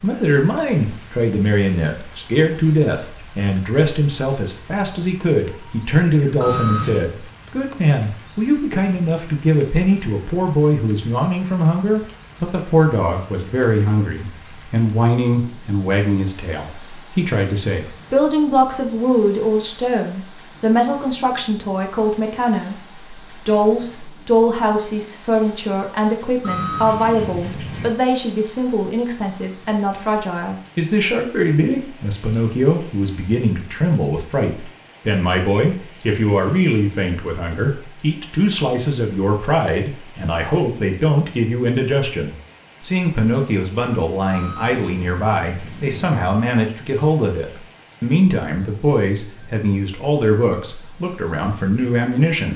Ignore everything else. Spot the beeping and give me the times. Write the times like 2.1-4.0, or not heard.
6.4-7.0, 26.4-27.9, 44.2-46.0.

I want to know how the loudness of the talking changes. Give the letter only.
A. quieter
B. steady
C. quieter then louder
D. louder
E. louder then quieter
B.